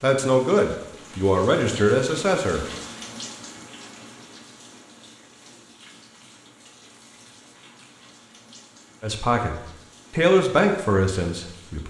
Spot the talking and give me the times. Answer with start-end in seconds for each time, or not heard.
0.0-2.6, 9.0-11.8.